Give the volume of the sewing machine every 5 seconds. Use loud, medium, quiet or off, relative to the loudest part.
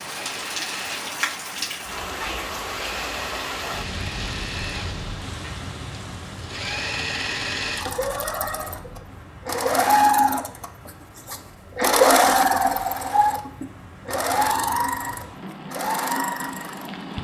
quiet, medium, loud, medium.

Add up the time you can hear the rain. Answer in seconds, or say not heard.
17 s.